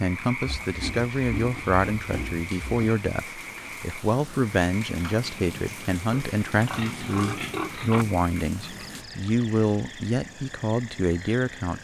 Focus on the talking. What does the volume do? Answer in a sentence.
The volume of the talking stays about the same.